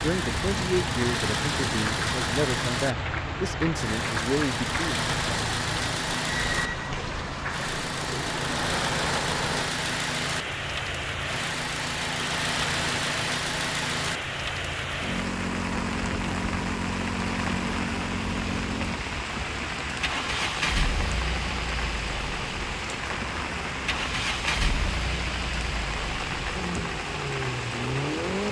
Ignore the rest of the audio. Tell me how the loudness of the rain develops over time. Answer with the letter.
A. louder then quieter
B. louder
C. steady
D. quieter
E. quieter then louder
C.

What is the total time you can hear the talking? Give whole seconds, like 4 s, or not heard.
5 s.